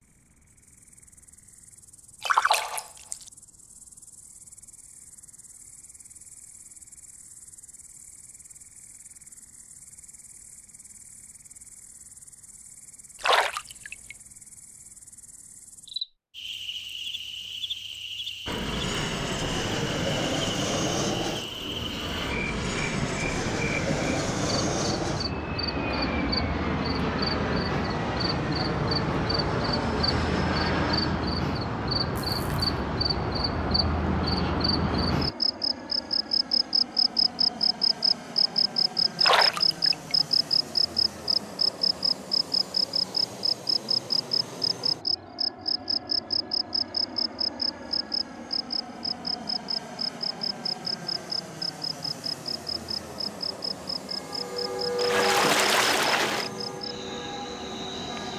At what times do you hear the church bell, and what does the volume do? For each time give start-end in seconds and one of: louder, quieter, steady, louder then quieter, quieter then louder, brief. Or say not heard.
54.0-58.3 quieter.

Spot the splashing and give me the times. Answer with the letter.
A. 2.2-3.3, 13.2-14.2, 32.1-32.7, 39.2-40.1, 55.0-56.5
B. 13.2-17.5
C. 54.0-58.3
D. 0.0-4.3
A.